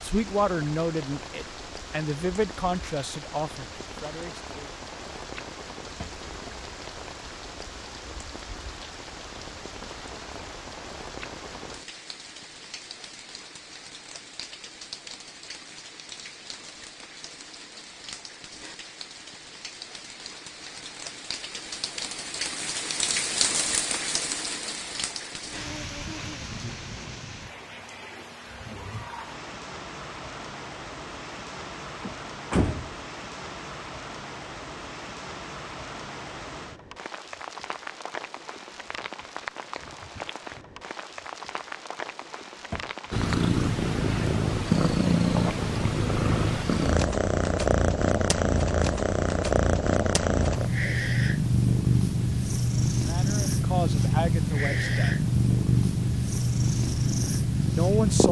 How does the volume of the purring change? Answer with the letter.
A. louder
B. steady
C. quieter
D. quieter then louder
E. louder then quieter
B.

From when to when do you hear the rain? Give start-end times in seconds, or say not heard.
0.0-43.5.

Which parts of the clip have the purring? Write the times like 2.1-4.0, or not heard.
43.1-58.2.